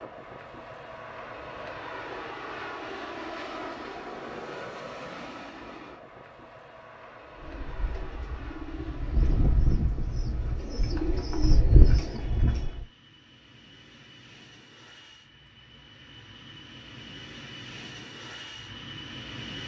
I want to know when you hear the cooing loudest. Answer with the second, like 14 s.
12 s.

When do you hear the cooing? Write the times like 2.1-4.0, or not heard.
7.3-12.8.